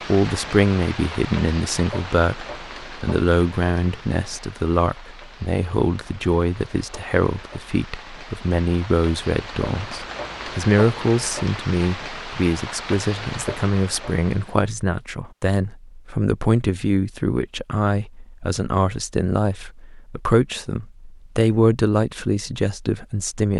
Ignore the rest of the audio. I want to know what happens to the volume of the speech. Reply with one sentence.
The loudness of the speech stays about the same.